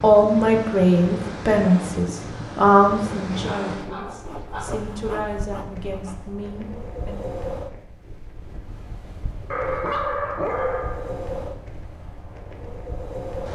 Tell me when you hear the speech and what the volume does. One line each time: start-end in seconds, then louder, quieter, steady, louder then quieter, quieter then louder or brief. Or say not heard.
0.0-7.2 quieter.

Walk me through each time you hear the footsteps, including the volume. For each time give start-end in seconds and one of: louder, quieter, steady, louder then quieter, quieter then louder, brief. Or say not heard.
not heard.